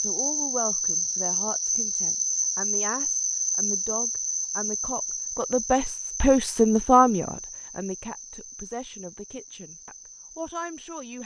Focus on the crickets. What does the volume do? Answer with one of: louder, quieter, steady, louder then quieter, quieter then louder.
quieter.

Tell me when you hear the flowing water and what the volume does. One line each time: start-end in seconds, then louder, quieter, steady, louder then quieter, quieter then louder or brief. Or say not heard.
not heard.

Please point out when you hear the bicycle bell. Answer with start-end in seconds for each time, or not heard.
not heard.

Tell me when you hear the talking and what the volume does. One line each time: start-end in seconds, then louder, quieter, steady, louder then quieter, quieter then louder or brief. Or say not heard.
0.0-11.2 louder then quieter.